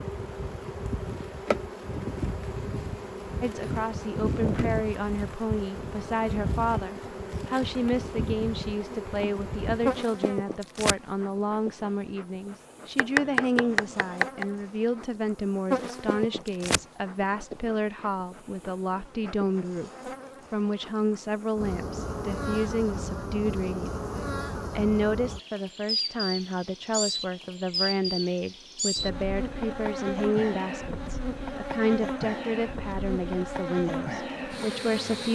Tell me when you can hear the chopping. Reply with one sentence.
You can hear the chopping from 12.9 to 14.4 s.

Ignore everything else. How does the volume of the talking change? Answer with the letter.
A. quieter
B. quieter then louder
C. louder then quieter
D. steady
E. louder
D.